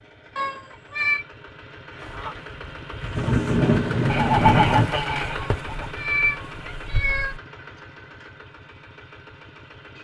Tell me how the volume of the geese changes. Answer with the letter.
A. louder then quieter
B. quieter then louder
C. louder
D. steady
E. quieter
A.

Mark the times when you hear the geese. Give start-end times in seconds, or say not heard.
2.0-7.4.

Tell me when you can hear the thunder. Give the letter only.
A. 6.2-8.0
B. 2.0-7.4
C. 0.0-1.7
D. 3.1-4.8
D.